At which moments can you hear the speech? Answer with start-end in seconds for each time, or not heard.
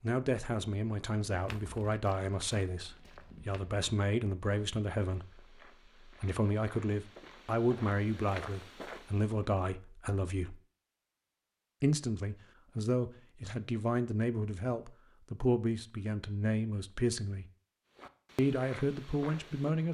0.0-10.6, 11.8-17.4, 18.4-19.9.